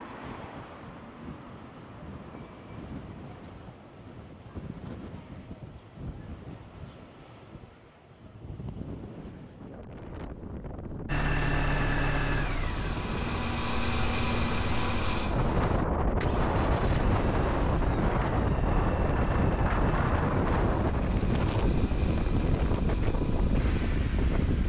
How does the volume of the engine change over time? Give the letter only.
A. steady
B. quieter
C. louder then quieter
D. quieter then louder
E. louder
B.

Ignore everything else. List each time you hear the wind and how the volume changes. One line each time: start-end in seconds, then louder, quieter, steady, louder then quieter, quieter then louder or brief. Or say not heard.
0.0-24.6 louder.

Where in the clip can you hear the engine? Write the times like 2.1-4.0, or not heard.
11.1-24.6.